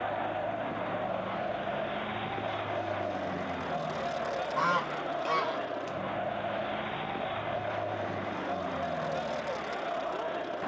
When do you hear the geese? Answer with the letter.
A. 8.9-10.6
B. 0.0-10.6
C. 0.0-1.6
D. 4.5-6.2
D.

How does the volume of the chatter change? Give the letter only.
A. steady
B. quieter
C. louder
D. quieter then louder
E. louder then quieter
A.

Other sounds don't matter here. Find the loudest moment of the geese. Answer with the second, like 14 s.
5 s.